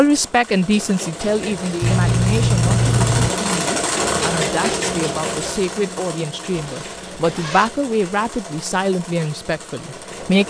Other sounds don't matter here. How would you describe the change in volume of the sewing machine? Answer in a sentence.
The loudness of the sewing machine goes up, then down.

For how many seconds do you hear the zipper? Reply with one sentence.
You can hear the zipper for 3 seconds altogether.